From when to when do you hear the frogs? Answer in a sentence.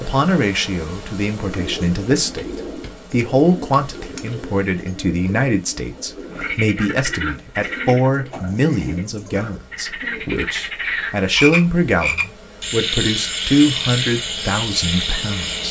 You can hear the frogs from 6.3 to 15.6 s.